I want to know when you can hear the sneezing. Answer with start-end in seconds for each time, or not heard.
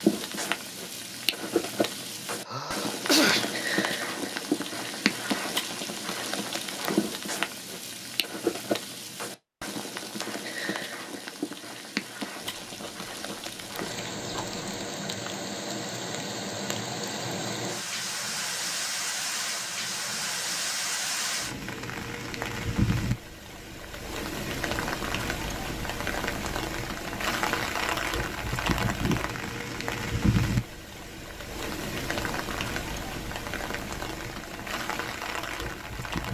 2.5-3.5.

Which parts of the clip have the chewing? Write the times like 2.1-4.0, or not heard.
12.4-14.8.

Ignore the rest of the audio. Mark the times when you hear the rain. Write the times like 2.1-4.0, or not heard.
0.0-36.2.